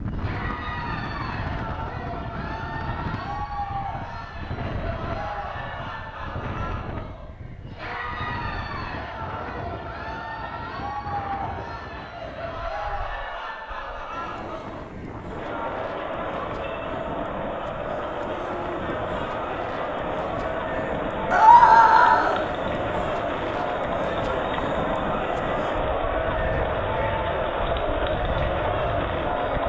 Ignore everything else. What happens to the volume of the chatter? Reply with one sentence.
The volume of the chatter goes up.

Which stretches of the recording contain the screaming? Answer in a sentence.
The screaming can be heard from 21.3 to 22.4 s.